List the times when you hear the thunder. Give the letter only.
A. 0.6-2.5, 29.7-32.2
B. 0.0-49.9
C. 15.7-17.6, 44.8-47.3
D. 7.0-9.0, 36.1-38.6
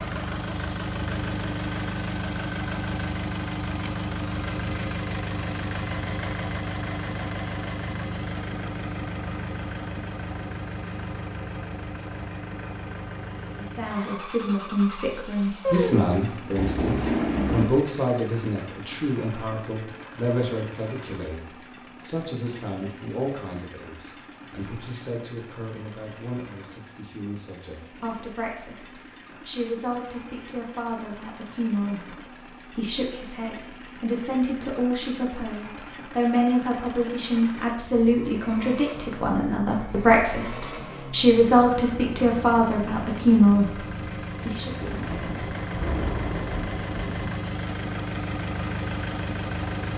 C.